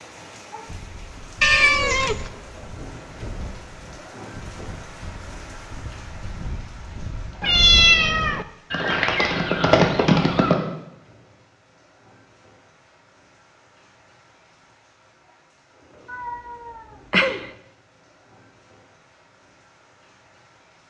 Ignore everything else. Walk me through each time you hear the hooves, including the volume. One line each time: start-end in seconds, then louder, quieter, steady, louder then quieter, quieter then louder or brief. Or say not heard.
0.7-10.6 louder.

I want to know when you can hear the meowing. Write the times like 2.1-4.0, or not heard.
1.4-2.3, 7.4-8.4, 16.1-17.4.